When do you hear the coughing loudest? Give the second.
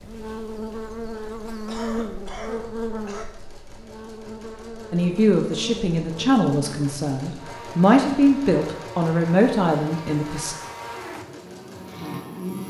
2 s.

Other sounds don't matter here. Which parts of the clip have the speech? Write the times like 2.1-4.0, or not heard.
4.9-10.6.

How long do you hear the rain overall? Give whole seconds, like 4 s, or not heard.
not heard.